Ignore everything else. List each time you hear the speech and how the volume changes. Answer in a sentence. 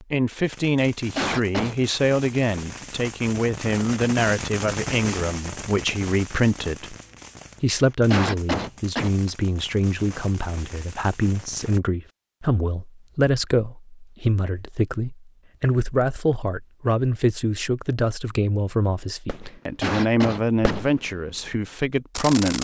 The speech can be heard from 0.0 to 7.0 s, at a steady volume; and from 7.6 to 22.5 s, at a steady volume.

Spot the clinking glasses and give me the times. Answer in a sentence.
You can't hear the clinking glasses here.